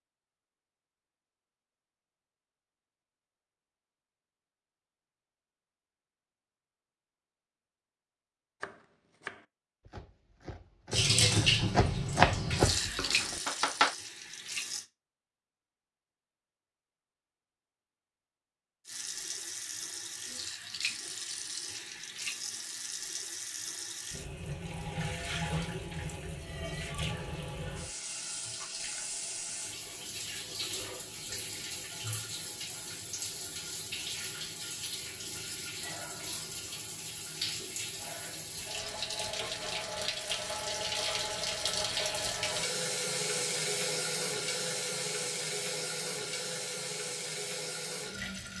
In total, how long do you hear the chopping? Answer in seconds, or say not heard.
5 s.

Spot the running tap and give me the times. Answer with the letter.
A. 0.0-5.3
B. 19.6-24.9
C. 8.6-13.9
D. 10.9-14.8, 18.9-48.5
D.